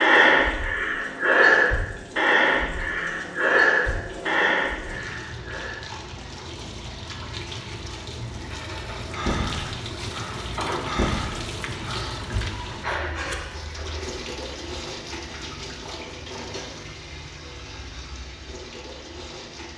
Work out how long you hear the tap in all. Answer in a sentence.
The tap can be heard for 20 seconds in total.